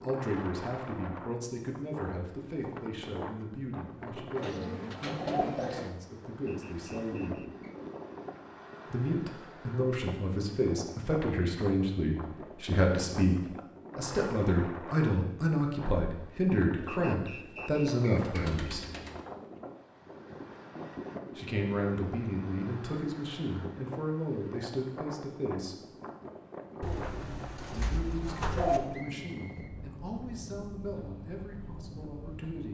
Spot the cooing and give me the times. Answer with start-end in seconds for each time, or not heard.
4.3-5.9, 16.8-19.2, 26.8-28.8.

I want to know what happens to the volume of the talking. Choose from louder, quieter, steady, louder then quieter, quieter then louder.
louder then quieter.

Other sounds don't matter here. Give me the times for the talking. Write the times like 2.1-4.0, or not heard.
0.0-7.5, 8.9-18.9, 21.4-25.8, 27.7-32.7.